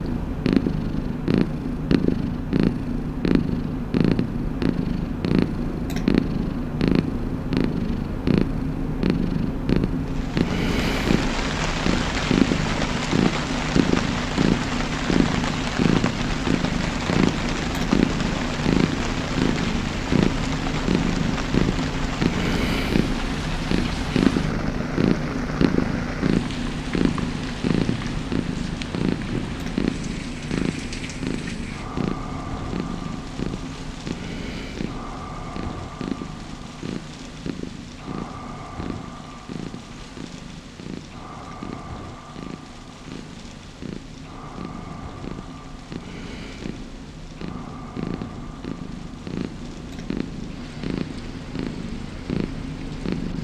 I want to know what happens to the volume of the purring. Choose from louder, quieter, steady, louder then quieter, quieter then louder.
quieter.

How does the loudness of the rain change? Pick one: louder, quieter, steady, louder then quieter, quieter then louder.
quieter.